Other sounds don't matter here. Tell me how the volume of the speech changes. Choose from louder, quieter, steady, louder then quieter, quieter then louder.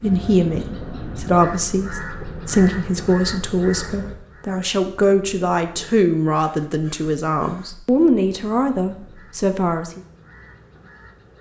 steady.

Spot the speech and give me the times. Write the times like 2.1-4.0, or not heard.
0.0-10.0.